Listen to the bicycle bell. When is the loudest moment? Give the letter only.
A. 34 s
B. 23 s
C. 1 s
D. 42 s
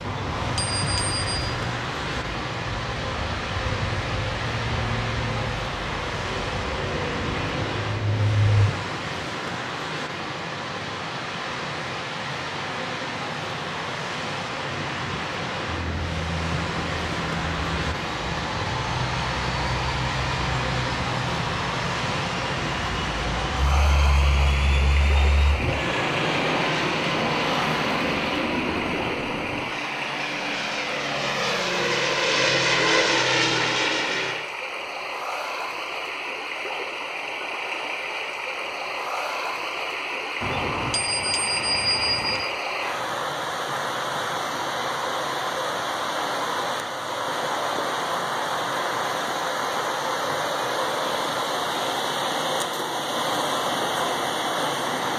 D.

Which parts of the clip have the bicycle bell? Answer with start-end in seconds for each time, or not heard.
0.1-1.2, 40.4-42.4.